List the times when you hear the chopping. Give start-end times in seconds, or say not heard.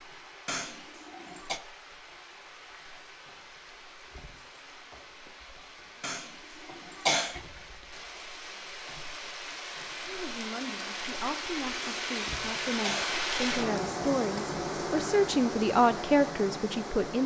not heard.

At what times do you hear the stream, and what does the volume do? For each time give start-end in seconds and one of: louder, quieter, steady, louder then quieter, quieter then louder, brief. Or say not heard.
0.0-17.2 louder.